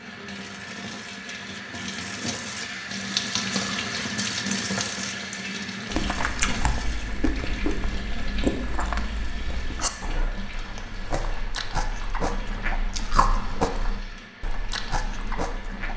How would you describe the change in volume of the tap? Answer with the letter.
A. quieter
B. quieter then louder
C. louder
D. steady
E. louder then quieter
A.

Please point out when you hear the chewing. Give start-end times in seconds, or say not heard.
5.9-15.9.